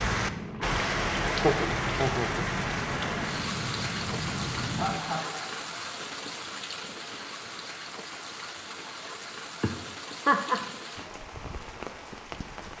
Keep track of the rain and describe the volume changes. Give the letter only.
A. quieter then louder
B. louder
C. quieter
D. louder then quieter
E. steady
C.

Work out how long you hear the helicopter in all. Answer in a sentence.
The helicopter can be heard for 5 seconds in total.